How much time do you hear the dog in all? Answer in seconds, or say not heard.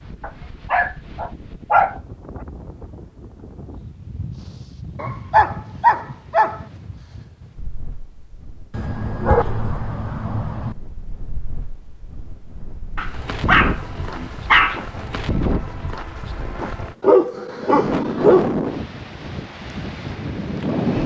9 s.